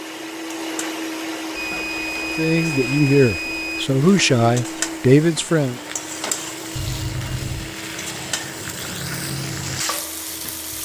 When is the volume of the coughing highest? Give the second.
7 s.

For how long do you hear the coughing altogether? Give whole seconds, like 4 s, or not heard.
2 s.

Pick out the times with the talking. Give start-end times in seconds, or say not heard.
2.4-5.8.